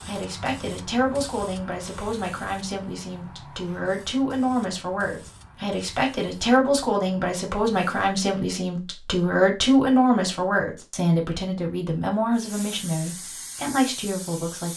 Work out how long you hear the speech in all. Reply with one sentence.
The speech can be heard for 15 seconds in total.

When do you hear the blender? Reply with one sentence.
You can't hear the blender here.